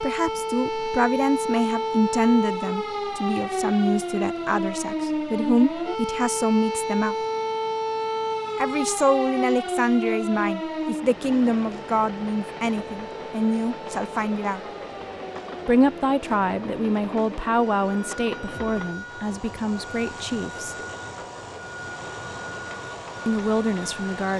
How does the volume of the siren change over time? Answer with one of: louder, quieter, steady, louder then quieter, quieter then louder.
quieter.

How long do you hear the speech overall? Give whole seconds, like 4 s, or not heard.
19 s.